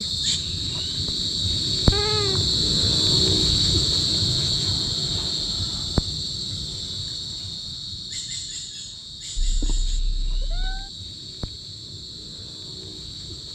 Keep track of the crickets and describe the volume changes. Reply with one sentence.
The volume of the crickets goes down.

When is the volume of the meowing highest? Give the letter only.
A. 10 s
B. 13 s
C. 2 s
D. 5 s
C.